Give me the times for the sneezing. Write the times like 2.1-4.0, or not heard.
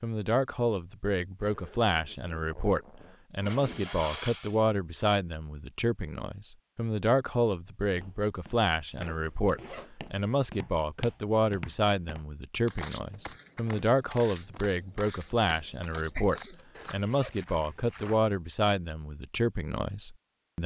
3.4-5.0, 15.8-16.6.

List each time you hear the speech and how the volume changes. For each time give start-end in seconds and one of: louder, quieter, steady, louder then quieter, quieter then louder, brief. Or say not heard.
0.0-20.6 steady.